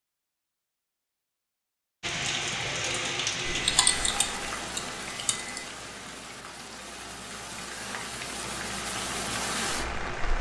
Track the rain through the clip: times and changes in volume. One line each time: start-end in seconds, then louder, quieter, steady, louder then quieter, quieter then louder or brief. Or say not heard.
2.0-10.3 quieter then louder.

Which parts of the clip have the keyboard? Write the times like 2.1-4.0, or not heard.
3.5-5.7.